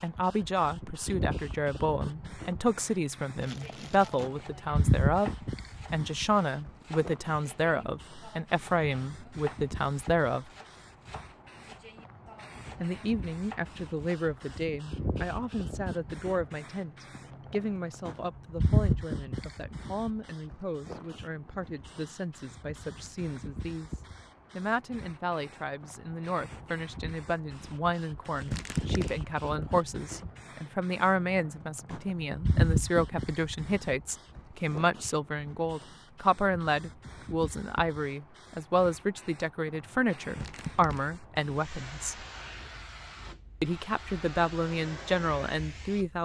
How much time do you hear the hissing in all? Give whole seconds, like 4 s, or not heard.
46 s.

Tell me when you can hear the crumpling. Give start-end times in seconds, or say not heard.
3.4-4.3, 28.2-29.1, 40.3-41.0.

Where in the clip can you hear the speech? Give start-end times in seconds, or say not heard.
0.0-10.5, 12.8-42.1, 43.6-46.2.